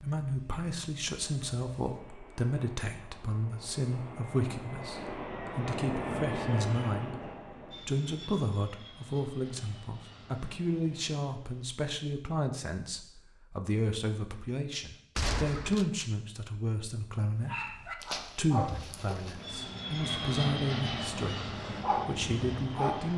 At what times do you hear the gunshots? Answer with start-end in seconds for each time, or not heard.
15.2-16.1.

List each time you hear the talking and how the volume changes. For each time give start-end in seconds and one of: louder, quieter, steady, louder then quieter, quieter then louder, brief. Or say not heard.
0.0-23.1 steady.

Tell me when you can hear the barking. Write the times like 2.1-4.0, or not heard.
17.4-19.5, 21.6-23.1.